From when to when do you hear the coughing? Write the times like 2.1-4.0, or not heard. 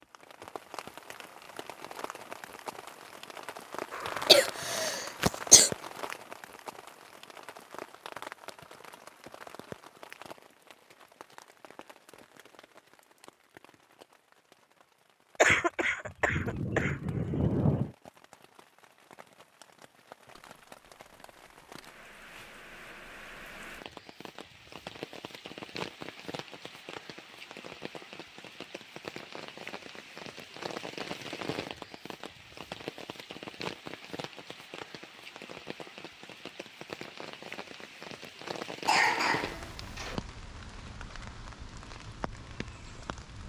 4.0-5.7, 15.4-17.9, 38.9-40.2.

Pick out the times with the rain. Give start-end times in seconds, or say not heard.
0.0-43.4.